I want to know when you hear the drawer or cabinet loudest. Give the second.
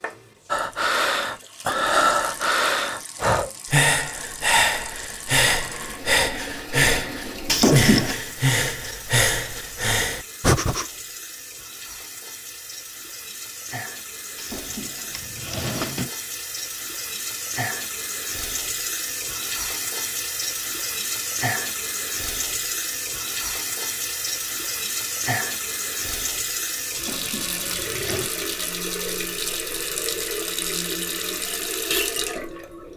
8 s.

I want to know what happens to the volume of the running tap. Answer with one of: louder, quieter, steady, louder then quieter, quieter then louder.
louder.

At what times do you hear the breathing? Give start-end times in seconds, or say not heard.
0.5-10.8.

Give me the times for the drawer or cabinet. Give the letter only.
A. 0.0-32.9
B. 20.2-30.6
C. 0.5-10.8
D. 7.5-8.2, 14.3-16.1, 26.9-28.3
D.